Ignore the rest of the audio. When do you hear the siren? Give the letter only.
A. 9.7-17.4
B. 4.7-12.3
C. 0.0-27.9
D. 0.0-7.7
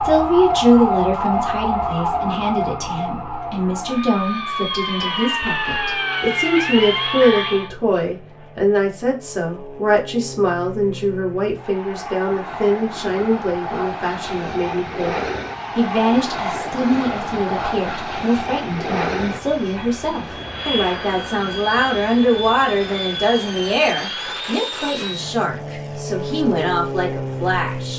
D.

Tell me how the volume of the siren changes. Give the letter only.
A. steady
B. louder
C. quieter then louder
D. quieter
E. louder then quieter
C.